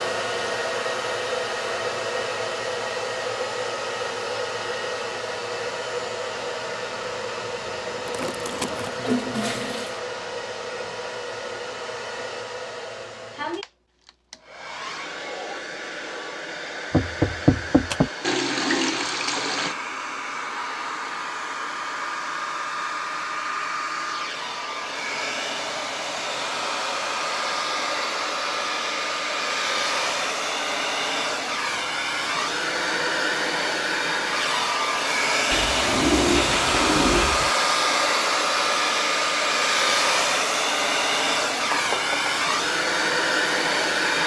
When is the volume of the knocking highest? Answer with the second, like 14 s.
17 s.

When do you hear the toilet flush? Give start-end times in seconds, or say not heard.
7.9-9.9, 18.2-19.8, 35.5-37.5.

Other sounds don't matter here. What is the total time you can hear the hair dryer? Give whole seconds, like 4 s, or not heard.
44 s.